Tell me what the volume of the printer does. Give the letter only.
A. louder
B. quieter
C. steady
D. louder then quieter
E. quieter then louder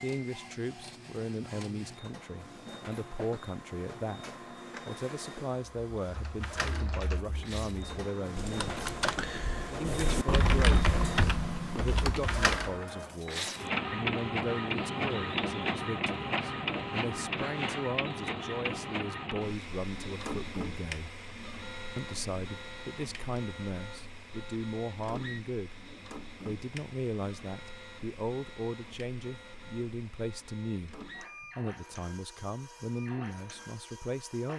D.